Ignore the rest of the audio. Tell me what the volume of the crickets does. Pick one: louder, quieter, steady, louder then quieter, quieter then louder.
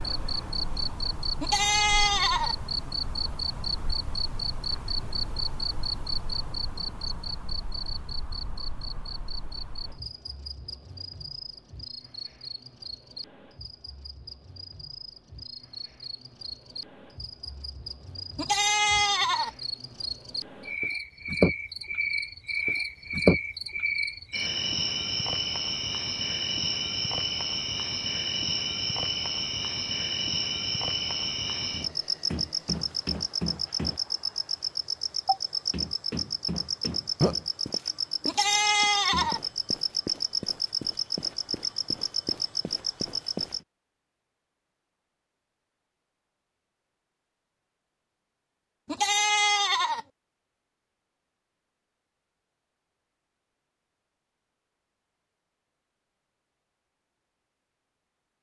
quieter then louder.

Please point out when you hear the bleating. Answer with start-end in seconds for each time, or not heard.
1.4-2.5, 18.4-19.5, 38.2-39.4, 48.9-50.0.